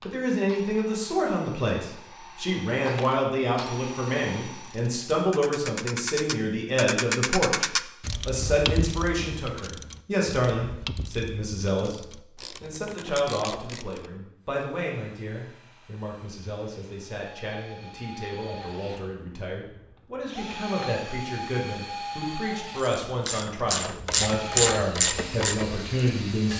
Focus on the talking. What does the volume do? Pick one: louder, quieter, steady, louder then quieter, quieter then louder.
quieter then louder.